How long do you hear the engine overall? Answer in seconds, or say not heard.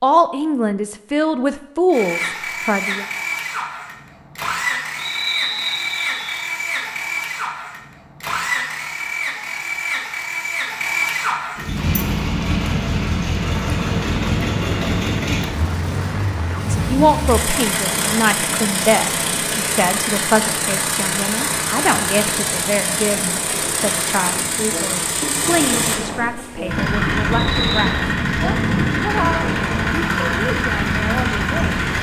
30 s.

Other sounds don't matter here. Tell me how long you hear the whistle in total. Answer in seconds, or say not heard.
2 s.